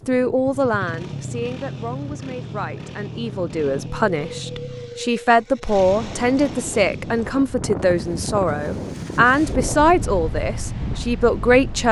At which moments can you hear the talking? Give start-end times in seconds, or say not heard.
0.1-11.8.